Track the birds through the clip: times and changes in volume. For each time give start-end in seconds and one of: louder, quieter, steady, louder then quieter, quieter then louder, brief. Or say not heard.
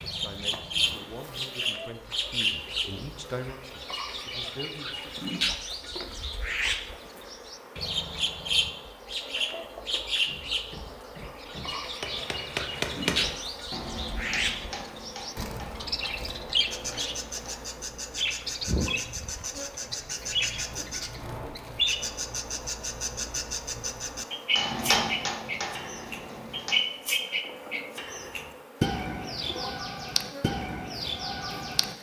0.0-31.9 steady.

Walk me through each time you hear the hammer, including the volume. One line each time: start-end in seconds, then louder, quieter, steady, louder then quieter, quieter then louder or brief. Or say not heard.
10.2-17.6 louder then quieter
24.6-26.9 brief.